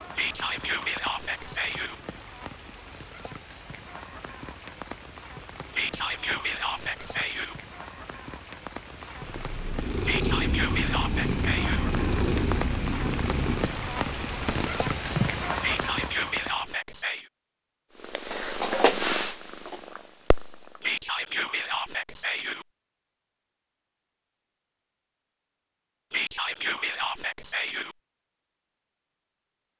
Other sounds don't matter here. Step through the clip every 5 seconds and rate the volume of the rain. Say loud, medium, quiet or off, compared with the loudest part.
medium, medium, loud, loud, off, off.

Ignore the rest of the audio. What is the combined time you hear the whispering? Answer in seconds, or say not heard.
11 s.